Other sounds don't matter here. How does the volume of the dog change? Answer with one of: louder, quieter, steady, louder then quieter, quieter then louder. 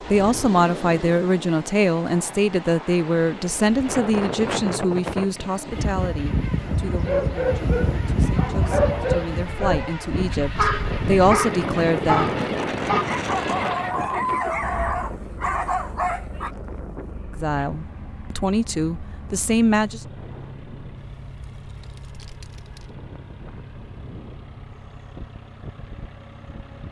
steady.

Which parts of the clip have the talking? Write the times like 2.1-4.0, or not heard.
0.1-12.3, 17.4-20.0.